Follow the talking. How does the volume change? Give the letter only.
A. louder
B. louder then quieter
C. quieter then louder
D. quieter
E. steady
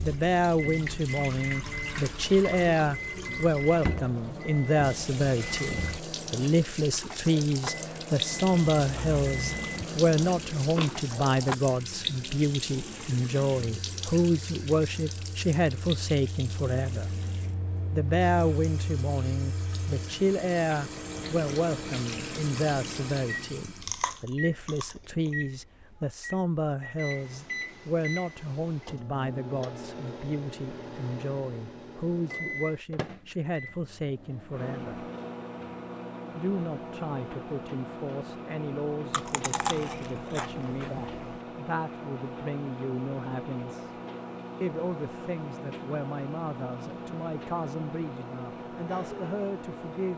D.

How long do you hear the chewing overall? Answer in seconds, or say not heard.
7 s.